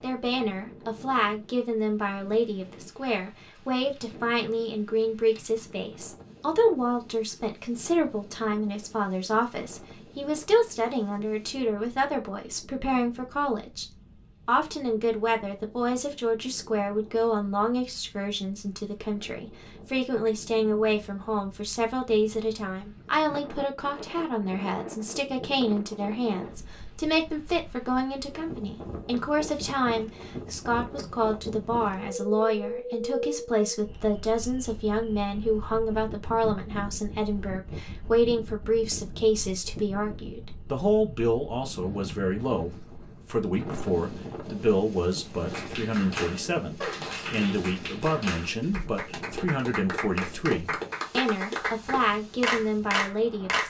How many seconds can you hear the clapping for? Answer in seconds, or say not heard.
8 s.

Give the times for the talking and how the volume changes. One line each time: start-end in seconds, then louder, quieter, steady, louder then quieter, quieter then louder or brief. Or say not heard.
0.0-53.6 steady.